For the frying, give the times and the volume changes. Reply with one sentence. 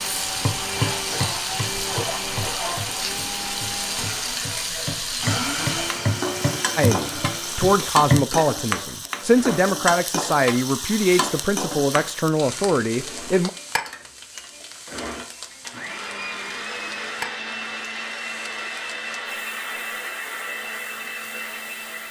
You can hear the frying from 0.0 to 22.0 s, getting quieter.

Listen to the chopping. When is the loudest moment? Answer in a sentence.
The volume of the chopping peaks at 8 seconds.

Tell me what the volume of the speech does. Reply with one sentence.
The volume of the speech stays about the same.